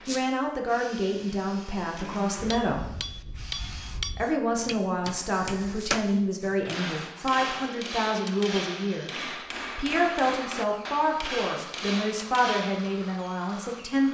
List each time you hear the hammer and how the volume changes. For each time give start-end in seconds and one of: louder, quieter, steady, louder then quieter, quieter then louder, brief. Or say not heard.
2.4-13.0 steady.